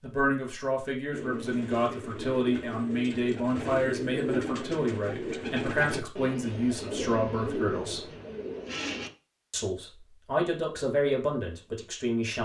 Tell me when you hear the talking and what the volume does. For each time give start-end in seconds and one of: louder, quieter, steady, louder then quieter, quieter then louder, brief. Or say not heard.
0.0-8.1 steady
9.5-12.4 brief.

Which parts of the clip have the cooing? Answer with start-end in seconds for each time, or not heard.
1.1-9.1.